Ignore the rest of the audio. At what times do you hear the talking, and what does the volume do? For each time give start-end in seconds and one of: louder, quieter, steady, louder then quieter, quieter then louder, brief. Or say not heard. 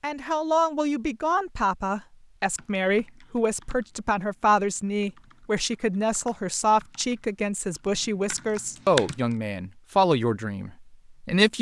0.0-11.5 steady.